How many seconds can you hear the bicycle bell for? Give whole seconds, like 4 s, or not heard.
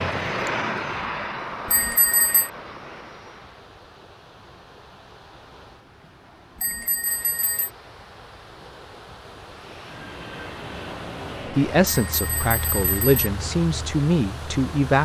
3 s.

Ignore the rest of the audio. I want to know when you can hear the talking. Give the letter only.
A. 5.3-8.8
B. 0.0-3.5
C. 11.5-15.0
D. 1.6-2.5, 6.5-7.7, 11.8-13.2
C.